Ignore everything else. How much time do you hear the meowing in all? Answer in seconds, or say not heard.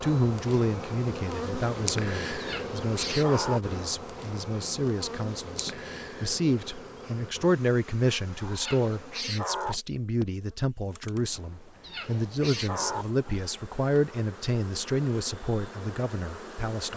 4 s.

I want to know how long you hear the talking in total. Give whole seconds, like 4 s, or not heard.
17 s.